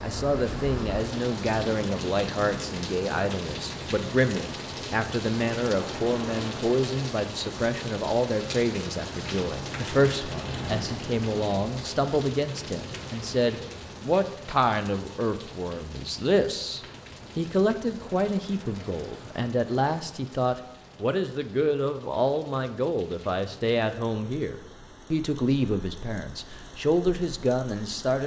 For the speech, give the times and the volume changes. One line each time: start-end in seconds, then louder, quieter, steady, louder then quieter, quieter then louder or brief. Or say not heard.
0.0-28.2 steady.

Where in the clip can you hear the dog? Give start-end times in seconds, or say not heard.
not heard.